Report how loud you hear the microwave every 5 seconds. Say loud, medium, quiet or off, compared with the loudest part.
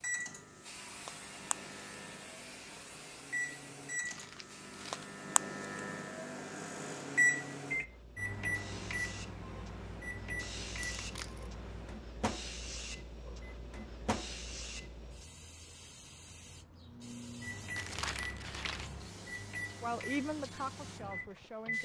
medium, loud, medium, medium, medium.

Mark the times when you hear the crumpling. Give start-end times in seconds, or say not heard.
4.0-5.1, 10.9-11.5, 17.8-18.9.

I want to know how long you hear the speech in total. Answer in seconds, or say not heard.
2 s.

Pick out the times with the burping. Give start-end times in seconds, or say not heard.
not heard.